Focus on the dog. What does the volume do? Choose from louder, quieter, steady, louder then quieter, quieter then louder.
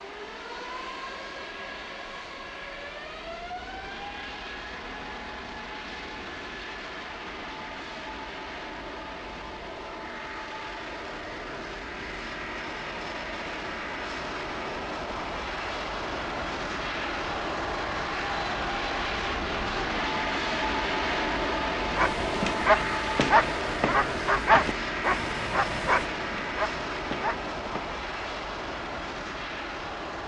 quieter.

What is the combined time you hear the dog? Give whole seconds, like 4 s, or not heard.
6 s.